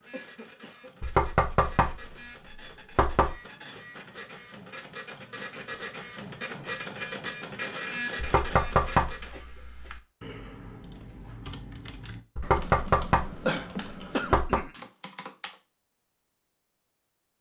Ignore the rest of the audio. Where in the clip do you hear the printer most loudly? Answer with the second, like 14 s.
8 s.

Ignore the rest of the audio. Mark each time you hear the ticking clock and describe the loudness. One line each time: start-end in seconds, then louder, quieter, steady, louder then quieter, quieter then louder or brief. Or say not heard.
not heard.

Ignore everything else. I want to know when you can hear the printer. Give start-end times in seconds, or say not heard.
0.0-9.5.